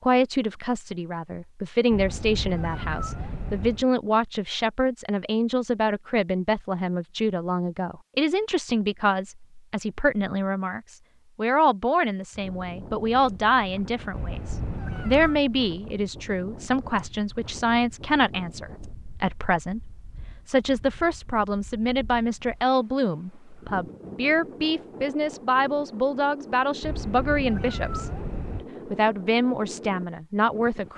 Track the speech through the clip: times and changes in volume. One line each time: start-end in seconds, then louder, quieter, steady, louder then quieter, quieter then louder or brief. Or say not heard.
0.0-28.1 steady
28.9-30.9 brief.